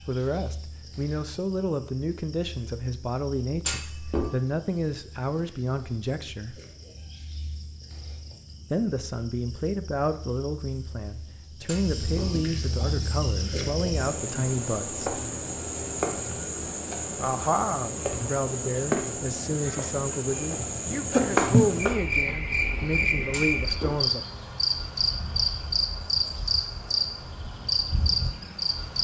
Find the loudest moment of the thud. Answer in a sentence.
The loudest moment of the thud is at 4 seconds.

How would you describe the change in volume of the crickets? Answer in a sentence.
The loudness of the crickets goes up.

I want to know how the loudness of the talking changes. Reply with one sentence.
The volume of the talking stays about the same.